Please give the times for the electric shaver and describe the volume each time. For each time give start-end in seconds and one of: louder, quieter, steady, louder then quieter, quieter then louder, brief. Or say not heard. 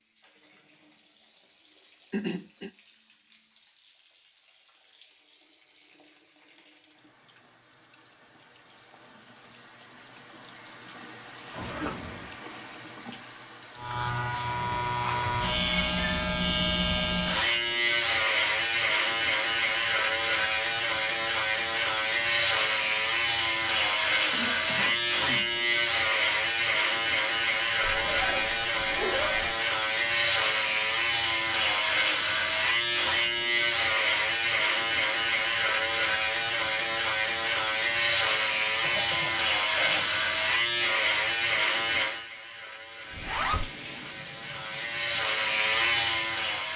13.8-46.7 steady.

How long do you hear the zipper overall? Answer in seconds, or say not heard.
3 s.